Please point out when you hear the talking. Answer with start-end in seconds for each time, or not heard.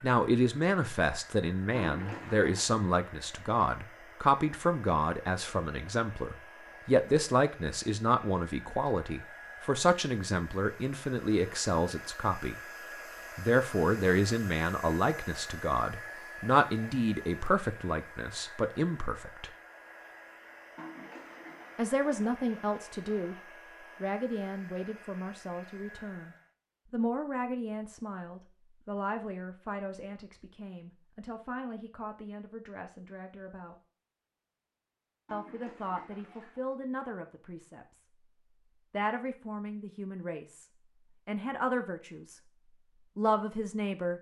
0.0-12.6, 13.3-19.5, 21.8-33.8, 35.3-38.0, 38.9-42.5, 43.1-44.1.